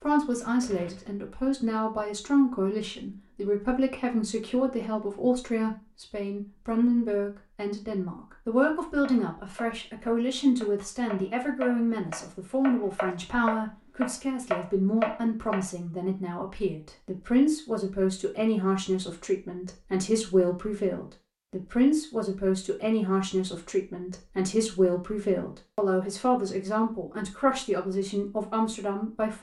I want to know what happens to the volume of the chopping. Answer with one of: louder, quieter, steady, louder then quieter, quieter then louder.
louder.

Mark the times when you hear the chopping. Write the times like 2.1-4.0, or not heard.
9.0-15.7.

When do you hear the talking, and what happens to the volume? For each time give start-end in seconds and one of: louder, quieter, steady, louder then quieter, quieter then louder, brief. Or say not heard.
0.0-29.3 steady.